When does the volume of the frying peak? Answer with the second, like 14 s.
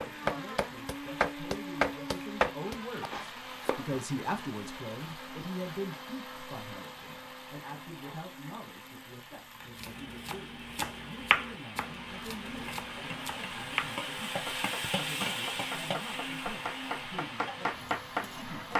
15 s.